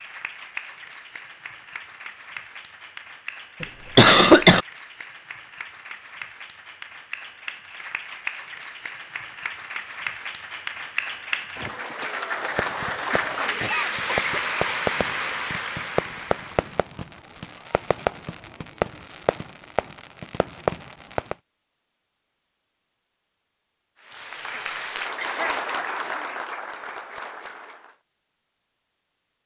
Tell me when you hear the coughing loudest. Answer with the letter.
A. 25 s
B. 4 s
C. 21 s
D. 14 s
B.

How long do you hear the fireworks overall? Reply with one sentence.
You can hear the fireworks for 9 seconds altogether.